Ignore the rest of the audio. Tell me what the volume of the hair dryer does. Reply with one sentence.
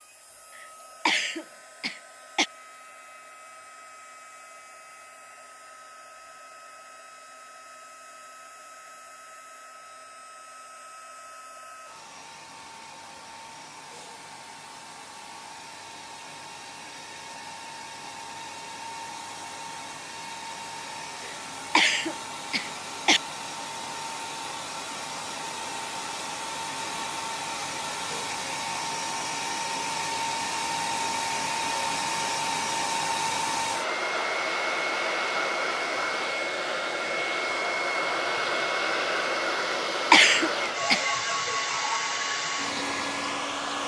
The volume of the hair dryer goes up.